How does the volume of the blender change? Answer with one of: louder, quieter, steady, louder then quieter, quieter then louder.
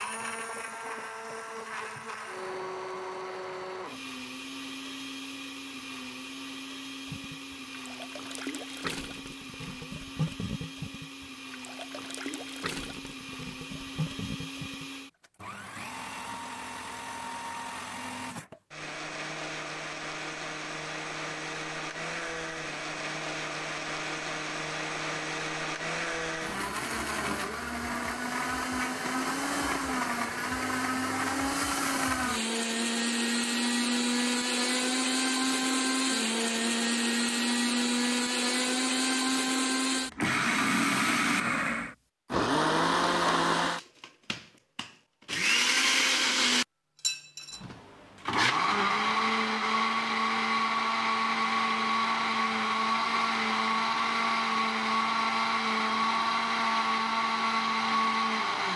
louder.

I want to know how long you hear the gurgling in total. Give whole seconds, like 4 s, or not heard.
8 s.